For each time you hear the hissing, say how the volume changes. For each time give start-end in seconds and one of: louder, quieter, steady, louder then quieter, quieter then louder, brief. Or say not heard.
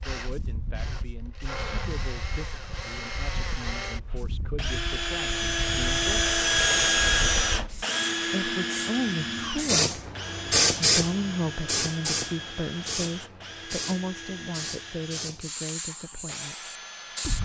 0.1-17.3 louder then quieter.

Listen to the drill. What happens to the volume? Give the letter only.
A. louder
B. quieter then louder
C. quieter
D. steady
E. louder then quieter
E.